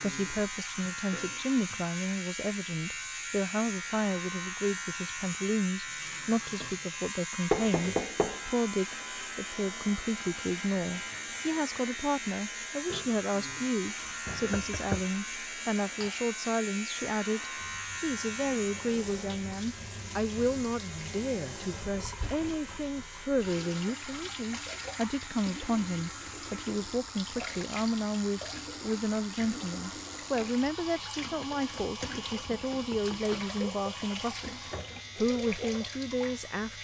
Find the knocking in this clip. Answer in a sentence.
The knocking can be heard from 7.5 to 8.4 s, from 14.5 to 15.1 s and from 32.5 to 33.5 s.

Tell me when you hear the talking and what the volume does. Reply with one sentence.
You can hear the talking from 0.0 to 34.5 s, at a steady volume; and briefly from 35.1 to 36.8 s.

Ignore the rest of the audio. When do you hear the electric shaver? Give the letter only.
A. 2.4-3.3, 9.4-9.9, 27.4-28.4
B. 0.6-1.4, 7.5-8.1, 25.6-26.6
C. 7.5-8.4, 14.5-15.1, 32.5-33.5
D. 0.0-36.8
D.